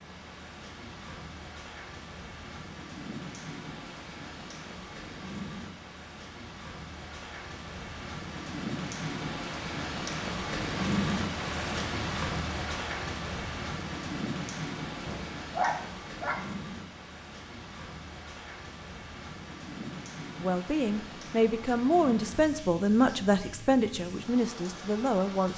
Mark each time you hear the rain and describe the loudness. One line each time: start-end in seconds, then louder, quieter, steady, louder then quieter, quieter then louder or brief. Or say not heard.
0.0-25.5 louder then quieter.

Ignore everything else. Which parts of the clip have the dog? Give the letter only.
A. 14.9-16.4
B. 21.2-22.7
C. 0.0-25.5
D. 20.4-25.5
A.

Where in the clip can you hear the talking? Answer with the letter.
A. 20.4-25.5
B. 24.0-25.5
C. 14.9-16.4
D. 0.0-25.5
A.